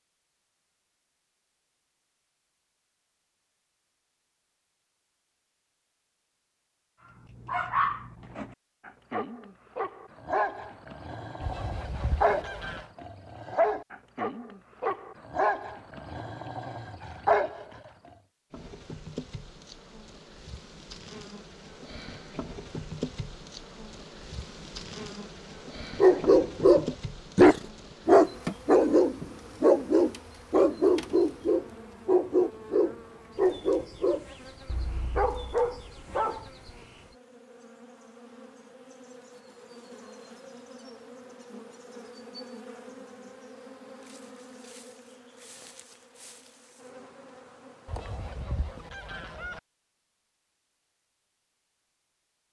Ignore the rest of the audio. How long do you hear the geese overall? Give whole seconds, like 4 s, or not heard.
3 s.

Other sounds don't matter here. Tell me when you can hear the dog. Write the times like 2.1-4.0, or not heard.
7.5-18.1, 26.0-36.5.